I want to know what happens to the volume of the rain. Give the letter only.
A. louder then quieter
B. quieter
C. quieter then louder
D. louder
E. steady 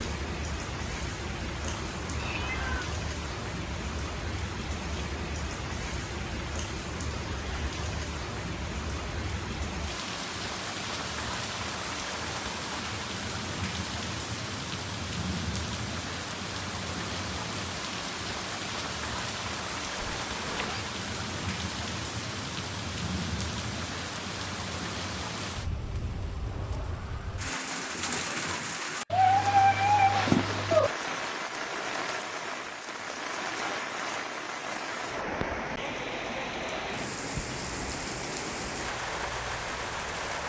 E.